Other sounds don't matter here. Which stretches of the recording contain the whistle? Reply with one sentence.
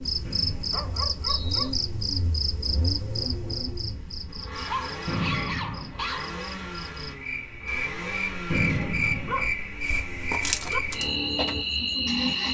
You can hear the whistle from 0.2 to 1.6 s, from 5.0 to 6.2 s and from 8.5 to 9.6 s.